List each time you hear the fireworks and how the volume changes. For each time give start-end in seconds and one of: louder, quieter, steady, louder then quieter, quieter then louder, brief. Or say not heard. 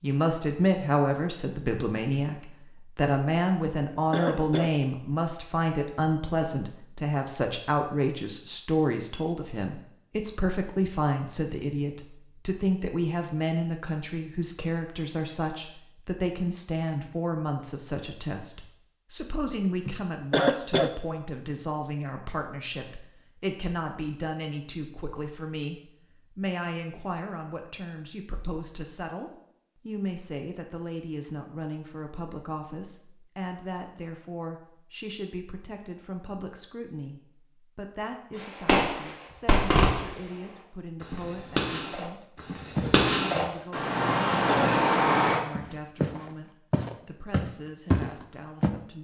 38.6-40.2 brief
41.0-45.4 quieter then louder.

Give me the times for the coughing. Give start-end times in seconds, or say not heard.
3.6-4.7, 19.9-20.9, 44.0-44.7.